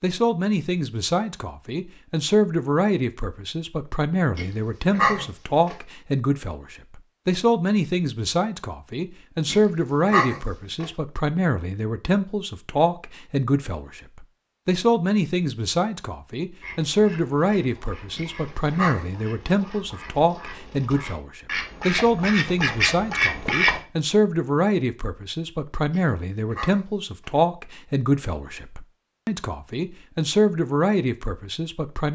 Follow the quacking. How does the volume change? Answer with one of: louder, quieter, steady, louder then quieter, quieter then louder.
louder.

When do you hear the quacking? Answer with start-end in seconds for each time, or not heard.
16.6-23.8.